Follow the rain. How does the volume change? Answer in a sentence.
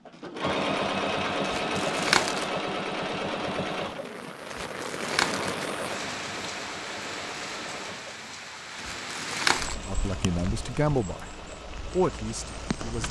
The loudness of the rain goes down.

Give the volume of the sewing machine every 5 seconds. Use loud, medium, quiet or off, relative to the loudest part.
loud, medium, quiet.